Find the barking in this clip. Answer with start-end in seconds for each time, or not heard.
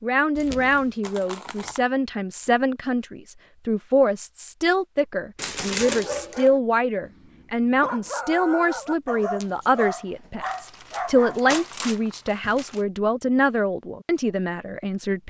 5.8-11.8.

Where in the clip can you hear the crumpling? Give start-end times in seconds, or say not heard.
1.0-1.8, 5.3-6.5, 10.4-12.8.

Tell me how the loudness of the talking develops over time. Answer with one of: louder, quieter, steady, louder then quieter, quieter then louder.
steady.